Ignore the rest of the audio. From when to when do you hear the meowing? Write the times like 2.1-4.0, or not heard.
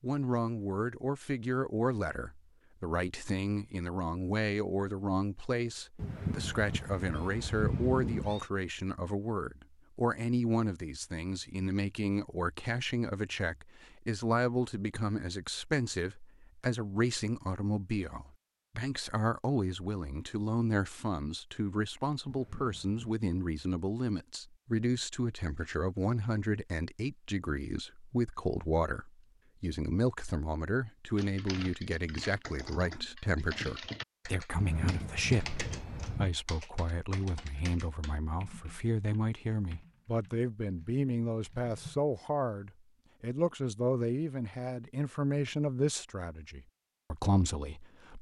6.0-8.4, 22.2-23.2, 34.5-36.4.